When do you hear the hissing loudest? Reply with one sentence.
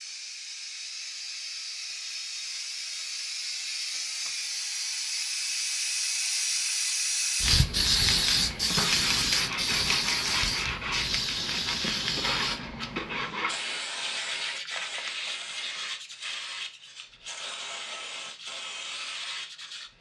The loudest moment of the hissing is at 8 seconds.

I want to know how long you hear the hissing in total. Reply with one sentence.
You can hear the hissing for 20 seconds altogether.